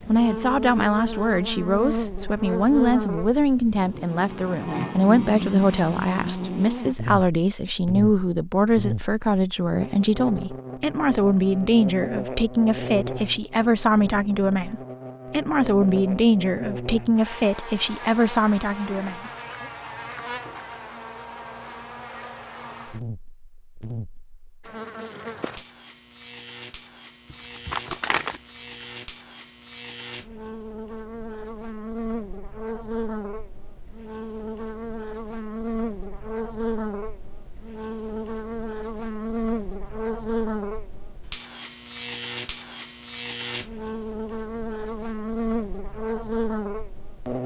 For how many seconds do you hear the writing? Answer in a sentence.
The writing can't be heard in this clip.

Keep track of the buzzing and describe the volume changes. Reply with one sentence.
The loudness of the buzzing goes down, then up.